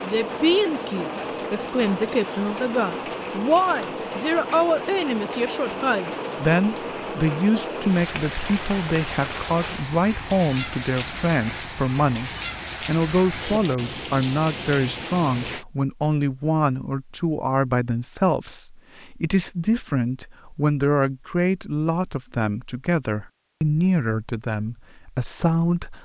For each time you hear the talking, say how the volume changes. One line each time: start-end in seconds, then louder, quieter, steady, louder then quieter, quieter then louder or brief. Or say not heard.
0.0-25.9 steady.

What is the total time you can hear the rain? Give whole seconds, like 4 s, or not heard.
16 s.